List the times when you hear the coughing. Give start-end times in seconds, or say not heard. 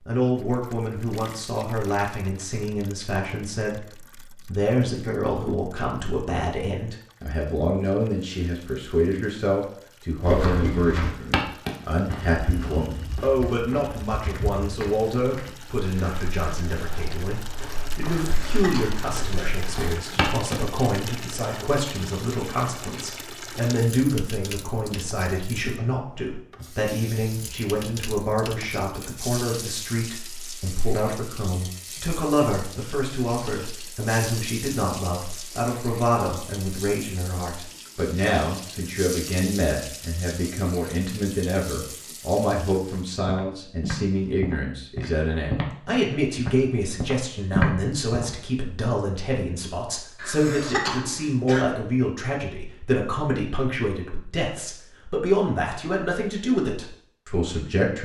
18.1-19.6, 50.1-51.6.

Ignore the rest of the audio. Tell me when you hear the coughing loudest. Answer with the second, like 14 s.
51 s.